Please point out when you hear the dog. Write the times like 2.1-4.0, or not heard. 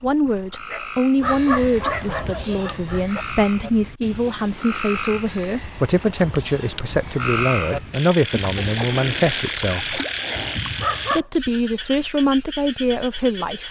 0.2-3.2, 9.8-11.2.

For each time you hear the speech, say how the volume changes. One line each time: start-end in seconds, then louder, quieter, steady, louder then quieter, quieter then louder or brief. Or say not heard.
0.0-10.0 steady
11.1-13.6 brief.